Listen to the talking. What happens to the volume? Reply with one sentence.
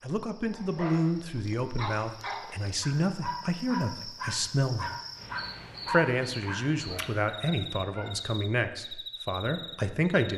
The loudness of the talking stays about the same.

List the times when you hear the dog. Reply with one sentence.
The dog can be heard from 0.5 to 8.1 s.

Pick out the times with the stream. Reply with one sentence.
The stream can't be heard in this clip.